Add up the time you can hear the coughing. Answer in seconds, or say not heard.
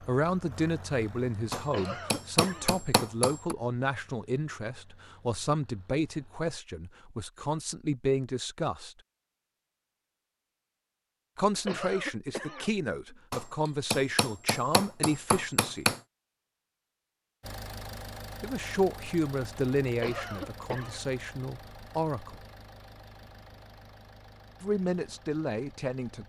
3 s.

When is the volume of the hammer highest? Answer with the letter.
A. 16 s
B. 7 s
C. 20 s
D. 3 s
A.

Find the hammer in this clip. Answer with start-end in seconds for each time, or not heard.
1.5-3.5, 13.3-16.0.